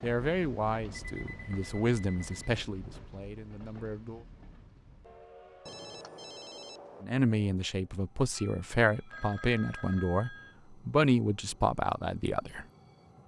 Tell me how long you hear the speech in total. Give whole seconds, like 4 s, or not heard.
10 s.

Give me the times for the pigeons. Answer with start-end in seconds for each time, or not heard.
not heard.